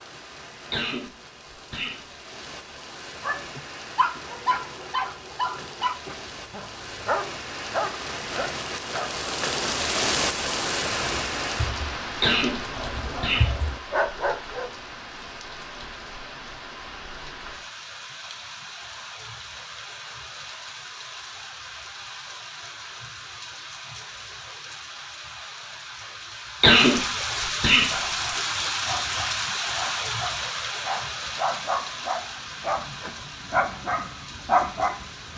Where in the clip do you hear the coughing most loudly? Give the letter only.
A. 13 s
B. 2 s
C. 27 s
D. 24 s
C.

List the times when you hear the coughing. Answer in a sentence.
You can hear the coughing from 0.7 to 2.0 s, from 12.2 to 13.5 s and from 26.6 to 27.9 s.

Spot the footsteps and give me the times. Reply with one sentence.
You can't hear the footsteps here.